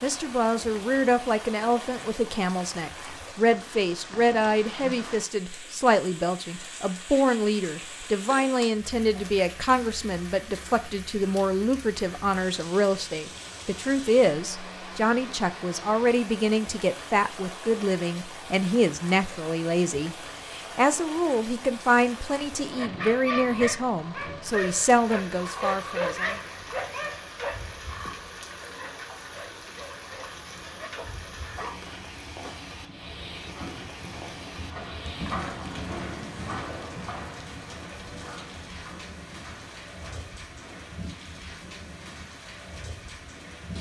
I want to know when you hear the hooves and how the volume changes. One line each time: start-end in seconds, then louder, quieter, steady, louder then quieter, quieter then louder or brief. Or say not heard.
30.2-41.0 louder then quieter.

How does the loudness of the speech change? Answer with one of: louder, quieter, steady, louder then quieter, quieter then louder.
steady.